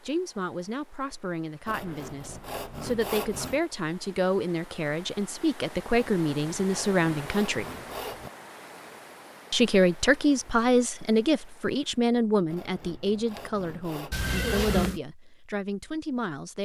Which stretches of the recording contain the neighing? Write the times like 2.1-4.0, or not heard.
14.1-15.0.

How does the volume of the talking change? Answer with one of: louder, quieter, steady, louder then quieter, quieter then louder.
louder then quieter.